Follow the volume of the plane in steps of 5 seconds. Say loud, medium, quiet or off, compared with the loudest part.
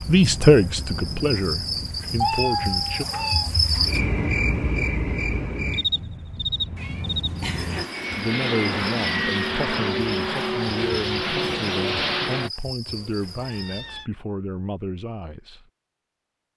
quiet, loud, loud, off.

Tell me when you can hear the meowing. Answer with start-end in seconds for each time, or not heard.
2.2-3.5, 6.8-8.1, 12.8-14.1.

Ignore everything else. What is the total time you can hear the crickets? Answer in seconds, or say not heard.
14 s.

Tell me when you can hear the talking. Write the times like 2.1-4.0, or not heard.
0.1-3.0, 8.2-15.7.